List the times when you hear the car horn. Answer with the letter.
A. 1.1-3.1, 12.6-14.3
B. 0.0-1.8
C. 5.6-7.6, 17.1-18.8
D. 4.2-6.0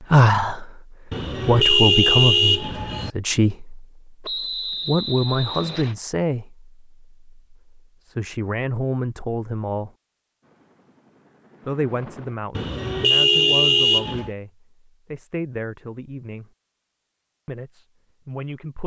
A.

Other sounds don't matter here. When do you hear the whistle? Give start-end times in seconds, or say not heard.
4.2-6.0.